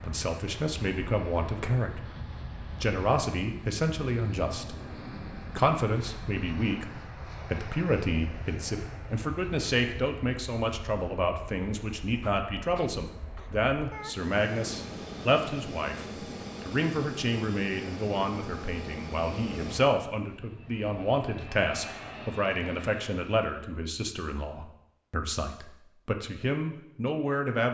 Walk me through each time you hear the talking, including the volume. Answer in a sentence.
The talking can be heard briefly from 0.0 to 2.0 s; briefly from 2.8 to 4.8 s; and from 5.5 to 27.6 s, at a steady volume.